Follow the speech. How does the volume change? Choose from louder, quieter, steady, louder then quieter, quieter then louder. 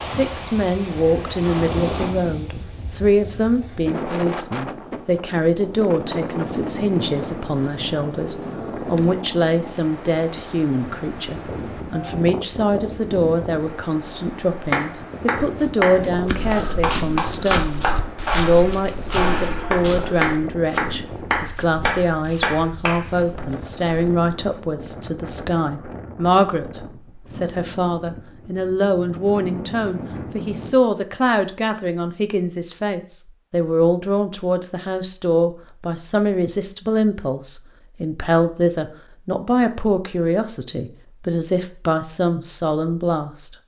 steady.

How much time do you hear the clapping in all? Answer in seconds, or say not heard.
8 s.